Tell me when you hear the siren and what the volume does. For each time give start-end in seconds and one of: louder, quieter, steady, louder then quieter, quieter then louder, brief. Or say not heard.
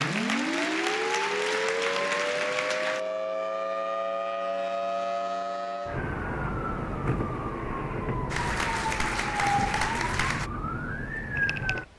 0.0-11.9 steady.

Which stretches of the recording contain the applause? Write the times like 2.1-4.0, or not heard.
0.0-3.0, 8.3-10.5.